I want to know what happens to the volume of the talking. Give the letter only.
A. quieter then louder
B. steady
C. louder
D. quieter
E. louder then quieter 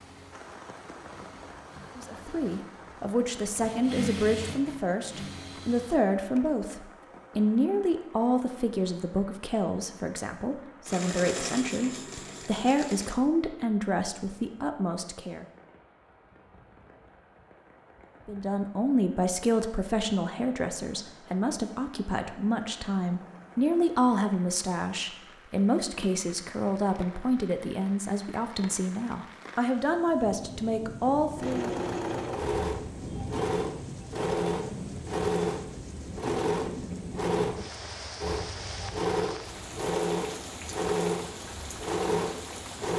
B.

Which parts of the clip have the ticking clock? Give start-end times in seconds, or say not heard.
not heard.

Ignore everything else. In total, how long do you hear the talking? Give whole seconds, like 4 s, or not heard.
27 s.